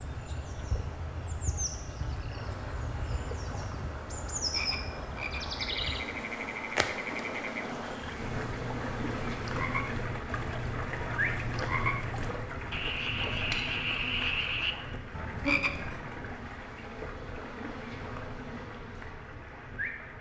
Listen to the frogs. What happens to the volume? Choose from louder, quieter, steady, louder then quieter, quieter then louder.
louder.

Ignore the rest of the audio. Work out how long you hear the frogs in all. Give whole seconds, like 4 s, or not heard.
16 s.